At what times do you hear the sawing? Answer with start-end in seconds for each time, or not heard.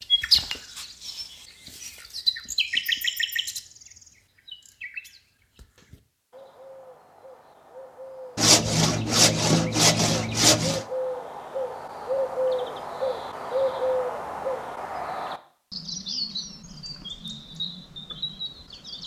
8.3-10.8.